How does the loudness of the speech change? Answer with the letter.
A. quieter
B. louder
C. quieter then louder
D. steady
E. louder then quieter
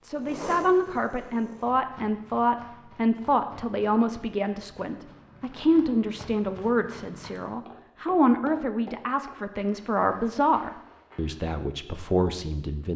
D.